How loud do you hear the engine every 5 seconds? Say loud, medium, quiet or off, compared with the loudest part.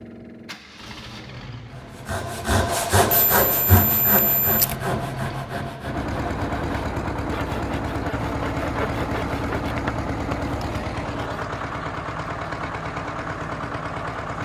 medium, loud, loud.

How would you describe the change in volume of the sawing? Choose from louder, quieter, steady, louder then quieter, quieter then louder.
quieter.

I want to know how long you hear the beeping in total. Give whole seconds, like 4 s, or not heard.
2 s.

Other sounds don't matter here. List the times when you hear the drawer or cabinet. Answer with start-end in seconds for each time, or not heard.
not heard.